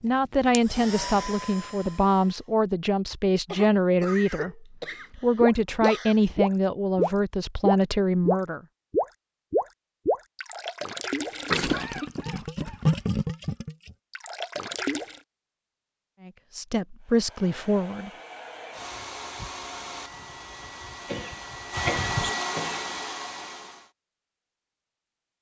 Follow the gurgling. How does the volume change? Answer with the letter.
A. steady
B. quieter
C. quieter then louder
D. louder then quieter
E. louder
B.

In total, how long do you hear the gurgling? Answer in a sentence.
You can hear the gurgling for 10 seconds altogether.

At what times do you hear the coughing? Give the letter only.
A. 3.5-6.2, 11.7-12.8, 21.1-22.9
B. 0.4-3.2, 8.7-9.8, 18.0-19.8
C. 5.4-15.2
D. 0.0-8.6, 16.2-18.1
A.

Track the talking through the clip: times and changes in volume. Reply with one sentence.
You can hear the talking from 0.0 to 8.6 s, at a steady volume; and briefly from 16.2 to 18.1 s.